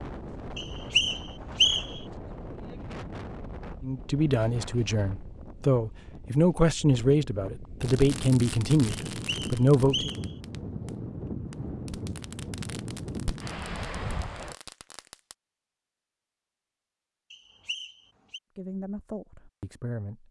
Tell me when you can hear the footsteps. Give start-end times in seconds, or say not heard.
not heard.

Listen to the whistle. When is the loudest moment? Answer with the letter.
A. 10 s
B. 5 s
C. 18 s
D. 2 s
D.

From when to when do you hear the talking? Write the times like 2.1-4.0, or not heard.
3.8-10.1, 18.6-20.2.